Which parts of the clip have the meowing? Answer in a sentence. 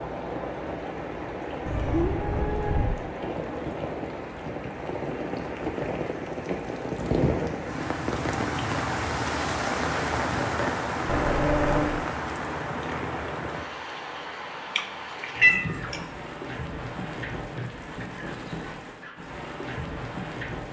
The meowing can be heard from 1.6 to 3.0 s, from 11.1 to 12.0 s and from 14.8 to 16.0 s.